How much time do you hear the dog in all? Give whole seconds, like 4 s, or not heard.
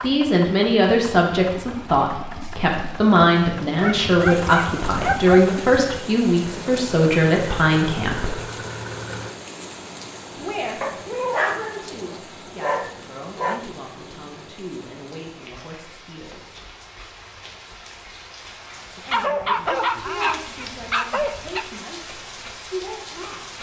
7 s.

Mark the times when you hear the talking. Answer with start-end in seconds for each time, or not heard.
0.0-8.3, 10.3-16.7, 18.9-23.5.